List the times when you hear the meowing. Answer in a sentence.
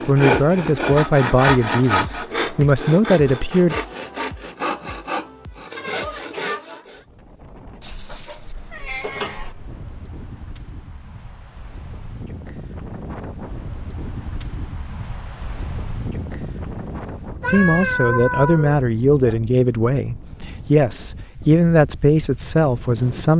The meowing can be heard from 7.8 to 9.6 s and from 17.4 to 19.4 s.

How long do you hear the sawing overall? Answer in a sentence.
The sawing can be heard for 7 seconds in total.